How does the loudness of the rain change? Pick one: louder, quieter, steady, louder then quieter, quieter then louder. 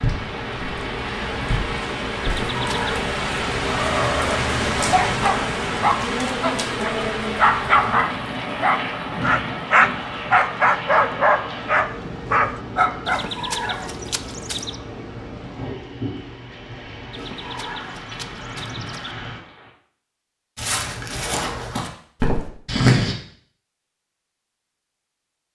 quieter.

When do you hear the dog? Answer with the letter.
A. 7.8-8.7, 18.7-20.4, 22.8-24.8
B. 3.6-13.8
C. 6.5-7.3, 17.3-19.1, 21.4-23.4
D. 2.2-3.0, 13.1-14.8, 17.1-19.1
B.